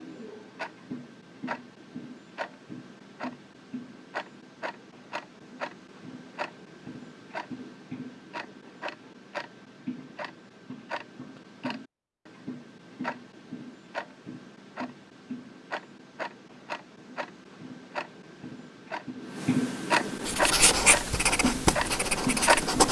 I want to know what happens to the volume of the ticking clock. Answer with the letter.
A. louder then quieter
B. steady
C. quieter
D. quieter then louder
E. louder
E.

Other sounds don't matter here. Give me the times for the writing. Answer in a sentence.
The writing can be heard from 20.2 to 22.8 s.